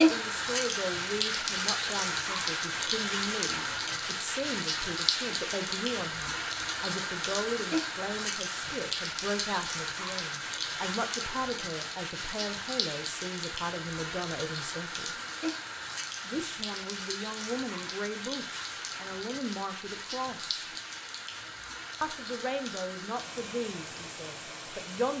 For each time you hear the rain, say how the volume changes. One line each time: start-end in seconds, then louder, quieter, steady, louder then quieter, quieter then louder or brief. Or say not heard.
0.0-25.1 quieter.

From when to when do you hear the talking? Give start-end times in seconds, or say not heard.
0.0-15.2, 16.2-20.6, 22.0-25.1.